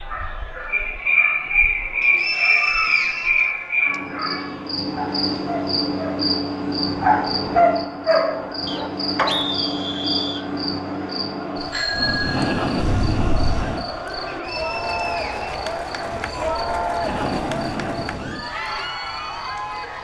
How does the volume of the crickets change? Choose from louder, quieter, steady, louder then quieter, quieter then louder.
quieter.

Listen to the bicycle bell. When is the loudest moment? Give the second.
12 s.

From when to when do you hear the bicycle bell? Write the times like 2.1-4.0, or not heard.
11.7-13.7.